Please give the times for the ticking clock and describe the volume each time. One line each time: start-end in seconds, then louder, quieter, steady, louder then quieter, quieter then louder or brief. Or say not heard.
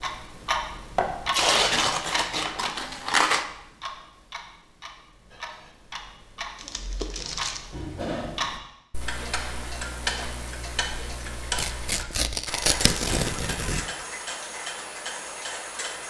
0.0-16.0 quieter then louder.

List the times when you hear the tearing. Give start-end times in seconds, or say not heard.
1.3-3.5, 6.5-7.6, 11.6-13.8.